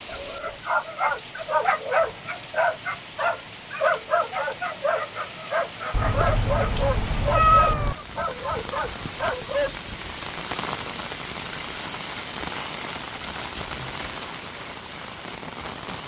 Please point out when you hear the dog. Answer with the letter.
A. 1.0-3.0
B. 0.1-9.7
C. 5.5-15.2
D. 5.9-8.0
B.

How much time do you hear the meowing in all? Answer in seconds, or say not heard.
2 s.